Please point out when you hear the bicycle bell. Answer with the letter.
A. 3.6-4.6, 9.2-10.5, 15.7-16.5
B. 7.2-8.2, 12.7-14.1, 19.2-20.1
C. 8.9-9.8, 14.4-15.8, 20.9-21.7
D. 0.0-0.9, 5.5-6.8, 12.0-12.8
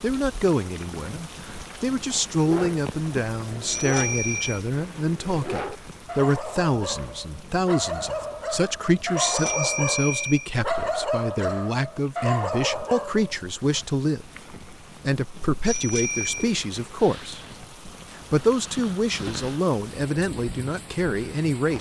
A.